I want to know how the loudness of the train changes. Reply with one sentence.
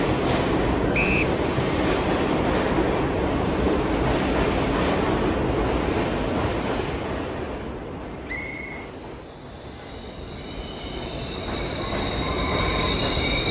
The volume of the train goes down, then up.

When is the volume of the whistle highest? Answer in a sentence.
The loudest moment of the whistle is at 1 second.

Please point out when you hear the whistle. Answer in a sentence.
The whistle can be heard from 0.9 to 1.4 s and from 8.2 to 8.9 s.